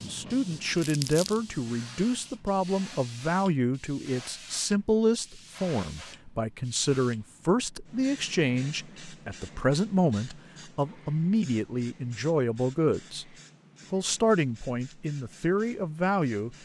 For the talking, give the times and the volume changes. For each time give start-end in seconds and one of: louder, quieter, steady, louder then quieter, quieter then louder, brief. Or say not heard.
0.0-13.2 steady
13.9-16.6 brief.